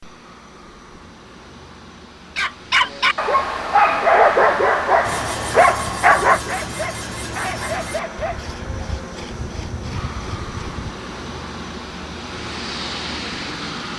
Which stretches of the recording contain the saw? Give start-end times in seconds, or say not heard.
5.0-10.8.